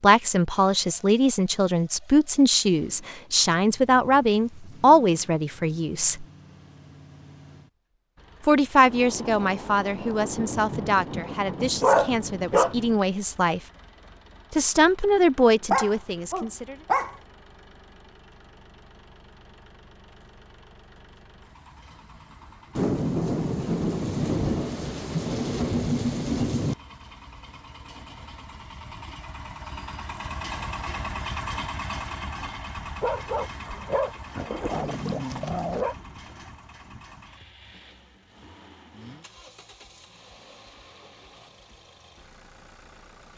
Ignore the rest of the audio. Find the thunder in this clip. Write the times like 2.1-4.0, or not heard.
8.8-13.1, 22.8-26.8.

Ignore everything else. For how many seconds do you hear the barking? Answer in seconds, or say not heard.
5 s.